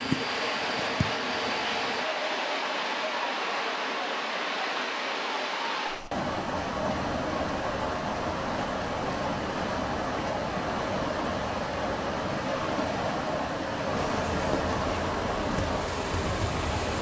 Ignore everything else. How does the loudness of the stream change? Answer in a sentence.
The volume of the stream stays about the same.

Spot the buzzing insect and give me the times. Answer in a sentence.
The buzzing insect can be heard from 0.0 to 2.1 s and from 13.9 to 16.8 s.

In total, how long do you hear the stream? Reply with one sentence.
You can hear the stream for 17 seconds altogether.